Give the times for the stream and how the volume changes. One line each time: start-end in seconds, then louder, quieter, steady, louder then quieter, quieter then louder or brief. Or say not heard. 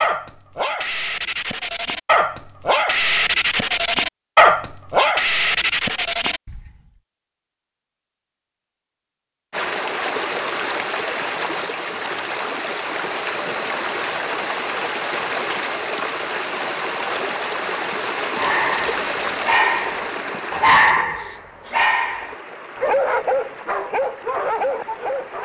9.5-25.4 quieter.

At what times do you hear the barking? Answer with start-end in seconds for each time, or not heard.
0.0-6.7, 18.4-25.4.